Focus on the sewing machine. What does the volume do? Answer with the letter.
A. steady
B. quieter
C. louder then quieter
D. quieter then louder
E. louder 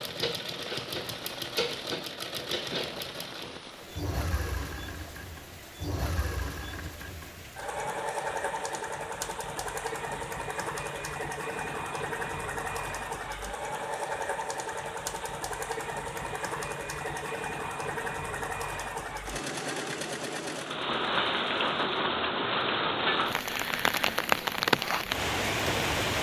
A.